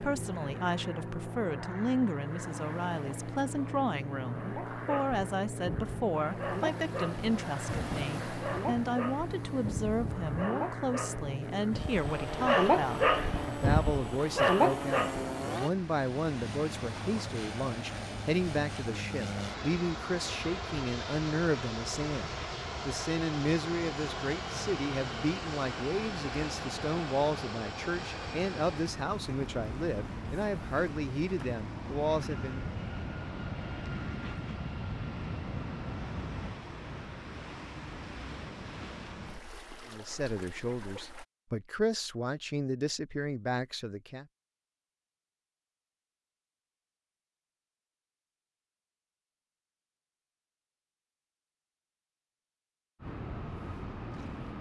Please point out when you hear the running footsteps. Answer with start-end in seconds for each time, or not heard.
not heard.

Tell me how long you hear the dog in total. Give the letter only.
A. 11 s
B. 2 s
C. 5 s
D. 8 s
A.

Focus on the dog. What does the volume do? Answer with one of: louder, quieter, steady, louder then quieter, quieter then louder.
louder.